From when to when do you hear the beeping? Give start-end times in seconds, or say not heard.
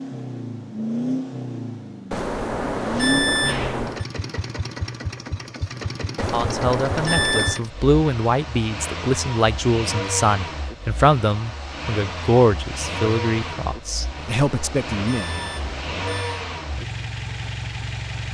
2.1-4.0, 6.2-7.6, 14.2-16.4.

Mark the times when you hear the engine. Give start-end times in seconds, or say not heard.
0.0-18.2.